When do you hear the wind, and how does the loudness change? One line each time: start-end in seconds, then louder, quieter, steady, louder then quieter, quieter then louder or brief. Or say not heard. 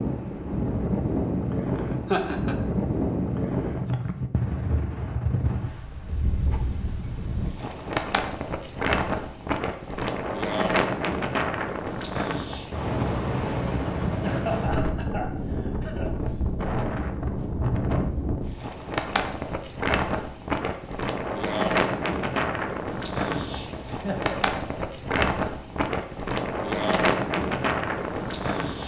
0.0-28.8 steady.